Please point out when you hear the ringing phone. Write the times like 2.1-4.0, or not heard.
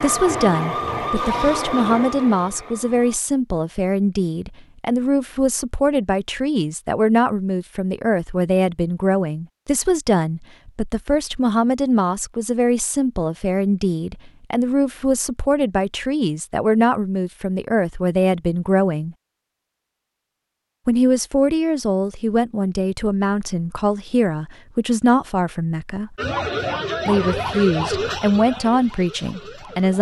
not heard.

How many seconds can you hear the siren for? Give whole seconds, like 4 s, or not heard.
7 s.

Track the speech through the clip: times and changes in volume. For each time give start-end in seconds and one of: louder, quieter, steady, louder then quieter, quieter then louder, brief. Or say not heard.
0.0-19.1 steady
20.9-26.1 steady
27.1-29.9 brief.